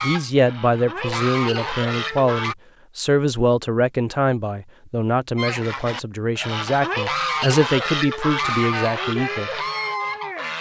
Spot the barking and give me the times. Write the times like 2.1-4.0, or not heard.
not heard.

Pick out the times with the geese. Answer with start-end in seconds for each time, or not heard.
0.0-2.5, 5.3-10.5.